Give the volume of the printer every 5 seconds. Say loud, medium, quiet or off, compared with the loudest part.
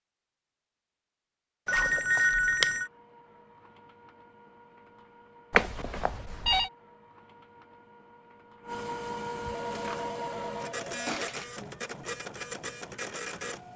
quiet, loud, loud.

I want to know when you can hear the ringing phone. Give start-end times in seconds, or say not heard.
1.6-2.9, 5.5-6.7, 9.5-11.4.